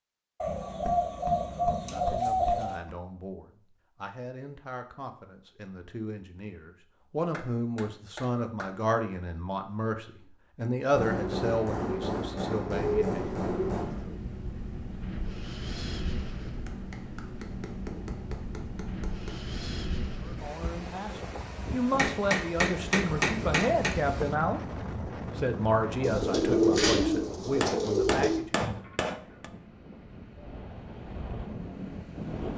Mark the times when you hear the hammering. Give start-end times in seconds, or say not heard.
0.5-2.8, 7.3-8.8, 10.9-13.9, 16.6-19.4, 21.9-24.0, 27.6-29.4.